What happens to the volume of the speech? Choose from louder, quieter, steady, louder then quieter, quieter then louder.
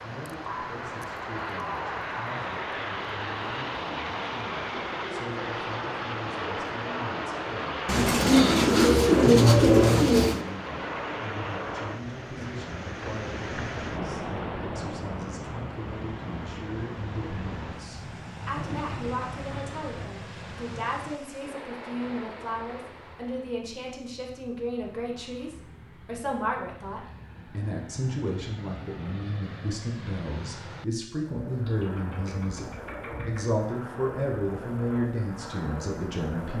louder.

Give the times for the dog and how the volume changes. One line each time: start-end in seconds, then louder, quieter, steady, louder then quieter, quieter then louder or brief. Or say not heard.
not heard.